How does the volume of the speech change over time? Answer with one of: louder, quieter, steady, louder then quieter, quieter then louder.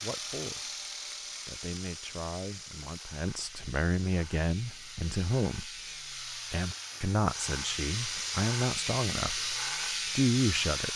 louder.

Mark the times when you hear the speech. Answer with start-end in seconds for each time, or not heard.
0.0-5.7, 6.5-10.9.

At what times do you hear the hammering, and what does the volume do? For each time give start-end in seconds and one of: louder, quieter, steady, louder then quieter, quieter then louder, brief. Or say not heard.
not heard.